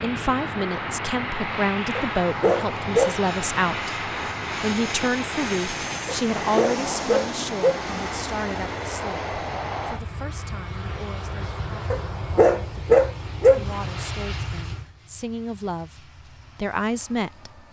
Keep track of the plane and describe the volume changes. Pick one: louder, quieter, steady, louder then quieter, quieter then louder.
quieter.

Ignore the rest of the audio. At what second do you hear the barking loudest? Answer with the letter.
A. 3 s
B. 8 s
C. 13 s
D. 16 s
C.